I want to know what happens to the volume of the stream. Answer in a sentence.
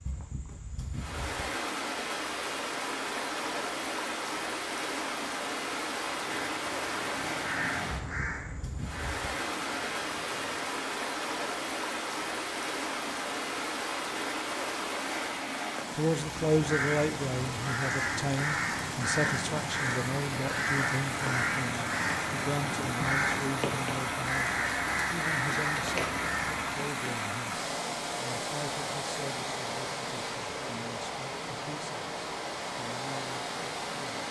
The volume of the stream stays about the same.